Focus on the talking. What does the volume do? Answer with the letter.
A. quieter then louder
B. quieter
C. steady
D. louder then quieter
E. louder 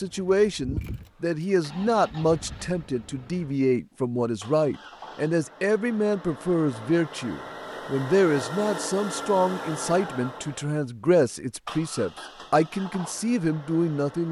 C.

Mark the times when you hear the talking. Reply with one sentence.
The talking can be heard from 0.0 to 14.2 s.